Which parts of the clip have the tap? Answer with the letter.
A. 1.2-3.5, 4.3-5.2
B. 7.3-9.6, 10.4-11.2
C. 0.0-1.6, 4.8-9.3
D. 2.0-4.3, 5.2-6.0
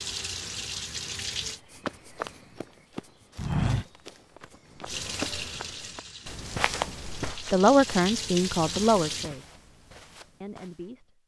C.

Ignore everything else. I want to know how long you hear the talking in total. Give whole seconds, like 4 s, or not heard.
3 s.